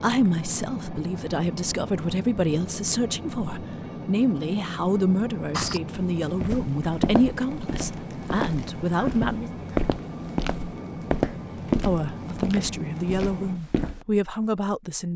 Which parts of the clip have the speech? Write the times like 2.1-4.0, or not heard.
0.0-9.5, 11.8-15.1.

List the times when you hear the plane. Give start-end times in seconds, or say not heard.
0.0-13.6.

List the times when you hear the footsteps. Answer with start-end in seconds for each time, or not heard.
5.5-14.1.